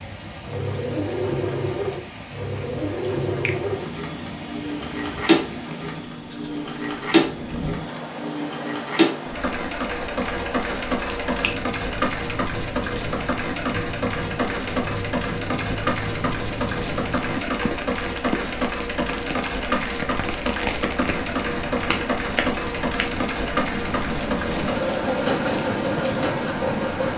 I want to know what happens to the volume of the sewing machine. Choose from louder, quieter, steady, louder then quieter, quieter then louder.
steady.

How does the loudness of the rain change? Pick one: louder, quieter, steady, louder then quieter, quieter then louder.
louder.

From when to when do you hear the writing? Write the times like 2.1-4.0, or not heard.
not heard.